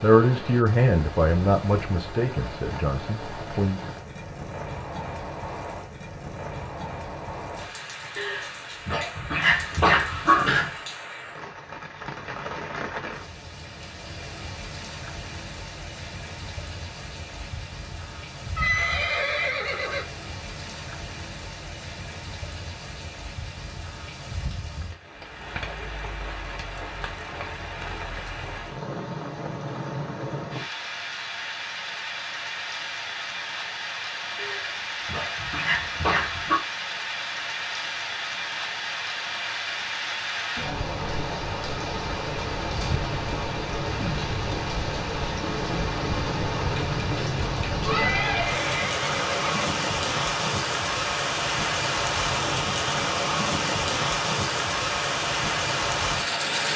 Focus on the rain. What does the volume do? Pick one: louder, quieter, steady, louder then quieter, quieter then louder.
louder.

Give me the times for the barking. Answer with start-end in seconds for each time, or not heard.
8.2-10.8, 34.4-36.6.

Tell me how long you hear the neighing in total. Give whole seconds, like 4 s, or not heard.
3 s.